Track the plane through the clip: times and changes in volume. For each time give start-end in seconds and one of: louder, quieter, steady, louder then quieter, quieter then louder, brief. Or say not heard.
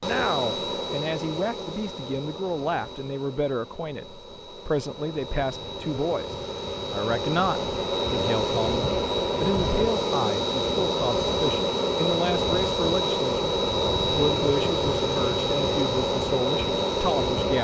0.0-17.6 louder.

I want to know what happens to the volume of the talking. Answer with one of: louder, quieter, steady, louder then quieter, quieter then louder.
steady.